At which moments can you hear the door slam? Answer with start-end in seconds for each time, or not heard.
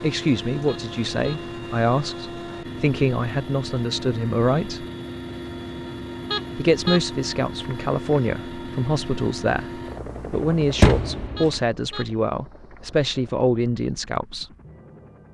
10.3-11.6.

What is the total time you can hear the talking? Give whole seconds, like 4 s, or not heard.
13 s.